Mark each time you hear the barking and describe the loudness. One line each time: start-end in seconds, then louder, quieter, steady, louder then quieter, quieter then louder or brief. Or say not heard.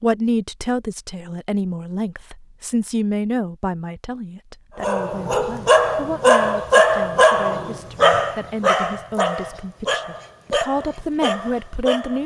4.8-12.2 quieter.